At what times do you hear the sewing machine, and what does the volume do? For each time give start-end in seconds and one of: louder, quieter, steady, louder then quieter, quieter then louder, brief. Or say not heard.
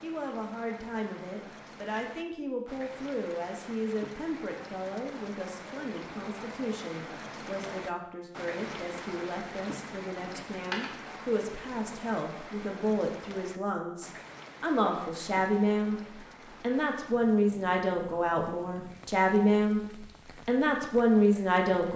not heard.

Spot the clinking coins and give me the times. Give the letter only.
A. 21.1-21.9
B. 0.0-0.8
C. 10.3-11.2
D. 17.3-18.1
C.